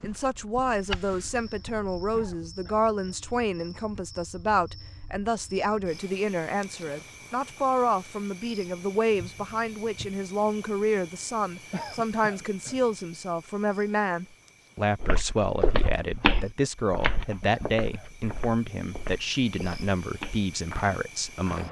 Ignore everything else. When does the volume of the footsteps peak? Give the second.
16 s.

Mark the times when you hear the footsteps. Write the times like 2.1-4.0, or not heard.
0.0-2.4, 15.0-21.6.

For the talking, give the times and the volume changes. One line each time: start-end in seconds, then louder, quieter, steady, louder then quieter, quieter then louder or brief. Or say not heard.
0.0-21.6 steady.